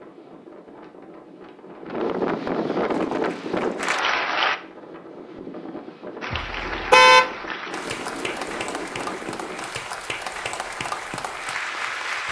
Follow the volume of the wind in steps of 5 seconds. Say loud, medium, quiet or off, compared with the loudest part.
loud, medium, off.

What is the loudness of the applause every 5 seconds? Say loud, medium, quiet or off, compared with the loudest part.
loud, medium, loud.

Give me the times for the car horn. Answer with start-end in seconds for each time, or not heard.
6.4-7.2.